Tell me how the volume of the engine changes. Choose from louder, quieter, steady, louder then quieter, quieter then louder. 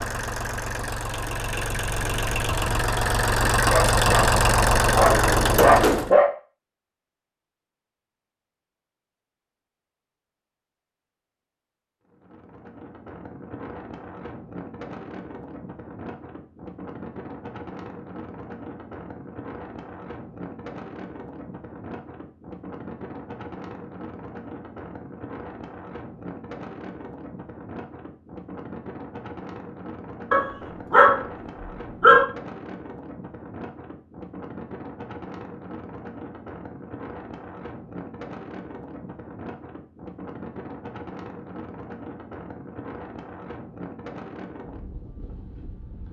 louder.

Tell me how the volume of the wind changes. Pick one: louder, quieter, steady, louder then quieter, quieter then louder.
steady.